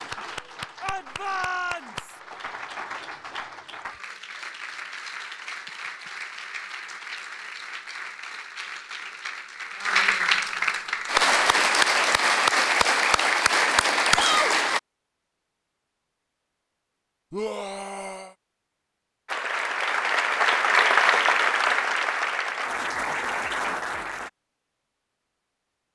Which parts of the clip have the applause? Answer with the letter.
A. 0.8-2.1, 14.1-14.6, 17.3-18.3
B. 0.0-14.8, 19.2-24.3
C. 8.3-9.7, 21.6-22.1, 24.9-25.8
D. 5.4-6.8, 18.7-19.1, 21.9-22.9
B.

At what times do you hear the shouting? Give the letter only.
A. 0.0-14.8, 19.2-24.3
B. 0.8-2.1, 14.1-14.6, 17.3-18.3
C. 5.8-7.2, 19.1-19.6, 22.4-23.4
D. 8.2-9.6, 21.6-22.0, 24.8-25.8
B.